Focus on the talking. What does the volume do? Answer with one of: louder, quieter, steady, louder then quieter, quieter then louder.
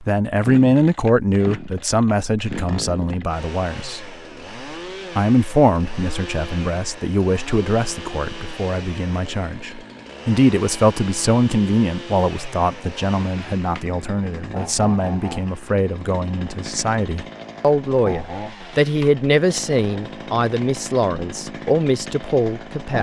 steady.